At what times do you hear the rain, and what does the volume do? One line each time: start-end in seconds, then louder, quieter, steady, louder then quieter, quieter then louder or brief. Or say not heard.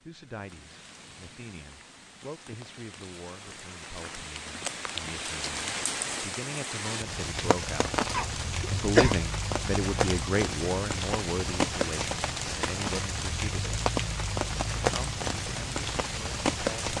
0.0-16.9 louder.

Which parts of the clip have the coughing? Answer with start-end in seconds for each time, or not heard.
8.1-9.2.